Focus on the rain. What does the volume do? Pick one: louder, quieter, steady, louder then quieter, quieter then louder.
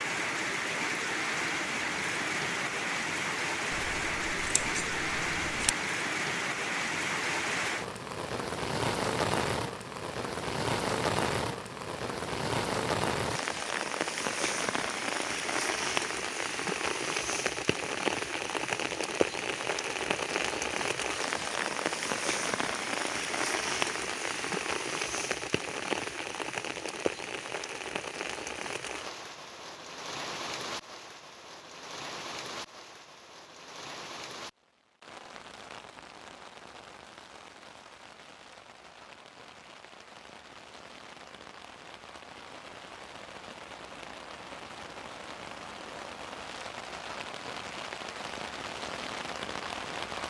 quieter.